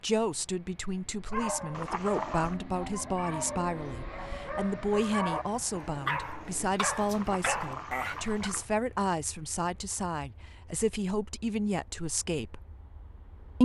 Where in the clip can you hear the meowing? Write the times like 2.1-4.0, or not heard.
1.7-2.5, 7.1-8.7.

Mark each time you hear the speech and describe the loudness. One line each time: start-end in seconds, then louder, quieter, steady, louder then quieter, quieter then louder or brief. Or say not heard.
0.0-12.6 steady.